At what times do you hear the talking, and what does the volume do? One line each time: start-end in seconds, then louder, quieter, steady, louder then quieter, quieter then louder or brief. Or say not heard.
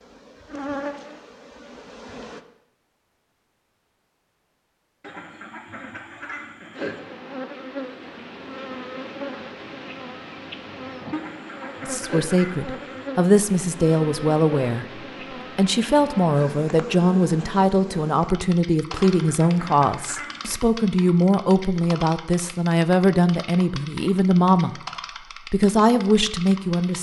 11.8-24.8 steady
25.5-26.9 brief.